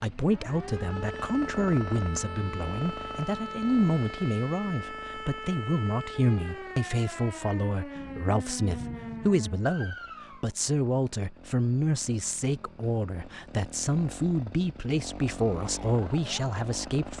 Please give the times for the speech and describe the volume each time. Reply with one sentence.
The speech can be heard from 0.0 to 17.1 s, at a steady volume.